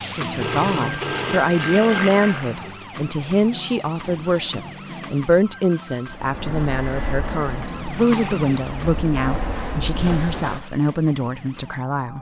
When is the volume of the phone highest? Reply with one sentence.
The loudest moment of the phone is at 1 second.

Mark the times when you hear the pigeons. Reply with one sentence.
You can't hear the pigeons here.